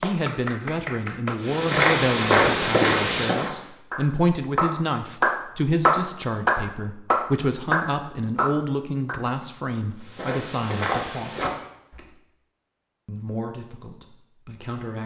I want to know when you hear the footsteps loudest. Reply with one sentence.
The loudest moment of the footsteps is at 2 seconds.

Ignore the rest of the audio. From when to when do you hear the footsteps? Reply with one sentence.
You can hear the footsteps from 1.4 to 3.7 s and from 10.0 to 12.1 s.